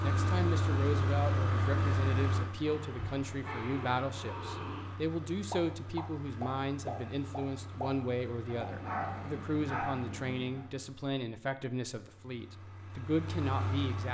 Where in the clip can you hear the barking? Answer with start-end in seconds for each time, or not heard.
2.6-5.0, 8.4-10.7.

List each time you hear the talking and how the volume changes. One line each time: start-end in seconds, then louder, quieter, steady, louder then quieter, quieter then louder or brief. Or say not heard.
0.0-14.0 steady.